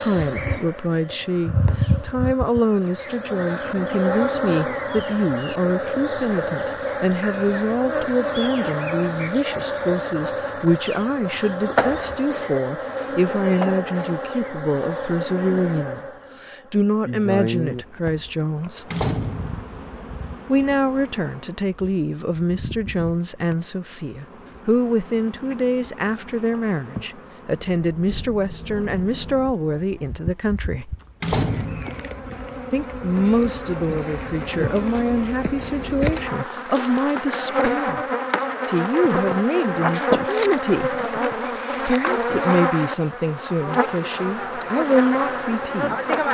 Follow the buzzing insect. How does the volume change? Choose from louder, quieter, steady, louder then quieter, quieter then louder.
quieter then louder.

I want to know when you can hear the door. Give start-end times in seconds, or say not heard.
18.9-19.6, 31.2-32.0.